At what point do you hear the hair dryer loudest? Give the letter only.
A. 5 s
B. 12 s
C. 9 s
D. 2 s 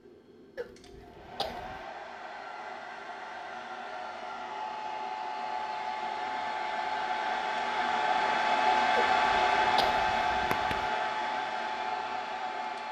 C.